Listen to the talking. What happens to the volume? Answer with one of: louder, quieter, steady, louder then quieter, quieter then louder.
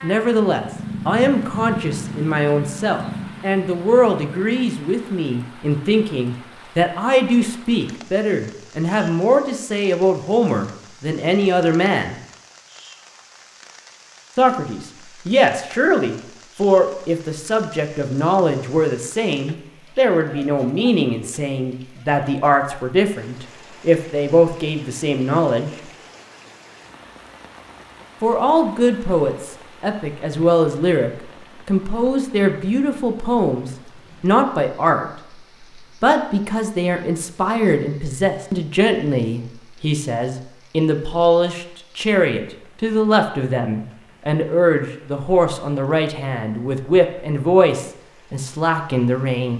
steady.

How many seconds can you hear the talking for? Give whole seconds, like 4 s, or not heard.
44 s.